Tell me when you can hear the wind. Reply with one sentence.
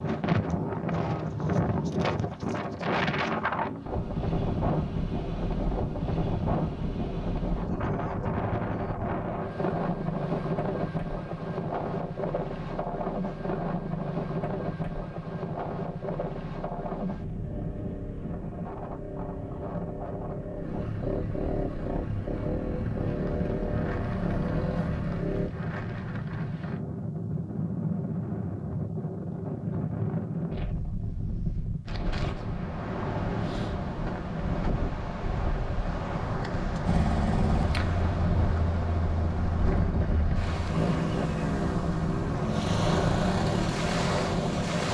You can hear the wind from 0.0 to 44.8 s.